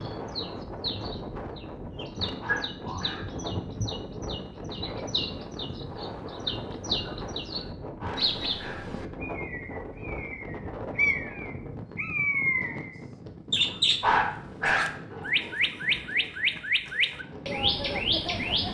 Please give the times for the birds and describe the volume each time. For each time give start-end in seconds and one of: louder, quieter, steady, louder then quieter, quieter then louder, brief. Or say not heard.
0.0-18.6 louder.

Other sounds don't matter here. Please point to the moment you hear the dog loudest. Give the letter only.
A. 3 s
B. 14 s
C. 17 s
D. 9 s
B.